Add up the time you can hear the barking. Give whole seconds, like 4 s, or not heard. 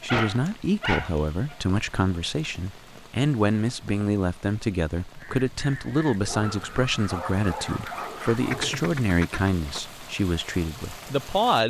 4 s.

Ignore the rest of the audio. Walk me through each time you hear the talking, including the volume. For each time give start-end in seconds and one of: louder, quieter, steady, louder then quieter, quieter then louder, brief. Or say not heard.
0.0-11.6 steady.